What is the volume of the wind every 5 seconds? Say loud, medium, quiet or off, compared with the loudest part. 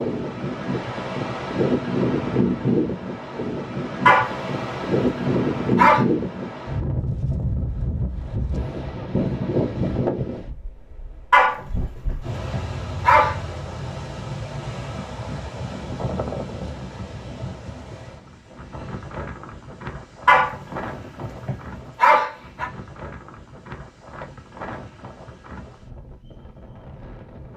loud, loud, medium, medium, quiet, quiet.